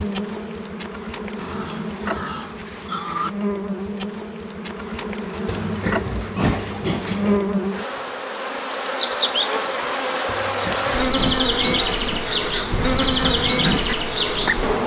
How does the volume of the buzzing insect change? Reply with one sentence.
The volume of the buzzing insect goes up.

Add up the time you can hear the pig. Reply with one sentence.
You can hear the pig for 6 seconds altogether.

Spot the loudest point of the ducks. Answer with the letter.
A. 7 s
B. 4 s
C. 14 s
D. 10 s
C.